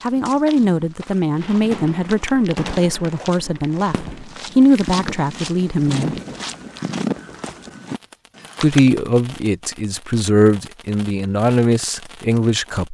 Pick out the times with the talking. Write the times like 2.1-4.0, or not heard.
0.0-6.2, 8.6-12.8.